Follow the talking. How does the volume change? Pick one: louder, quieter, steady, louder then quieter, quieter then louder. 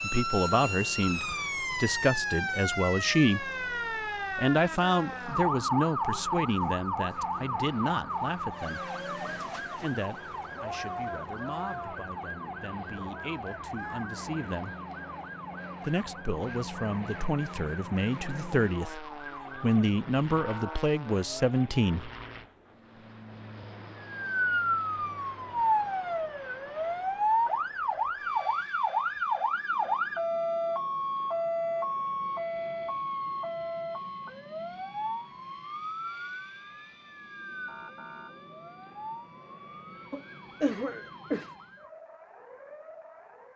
quieter then louder.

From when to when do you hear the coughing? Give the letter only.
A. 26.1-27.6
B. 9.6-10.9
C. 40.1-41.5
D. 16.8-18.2
C.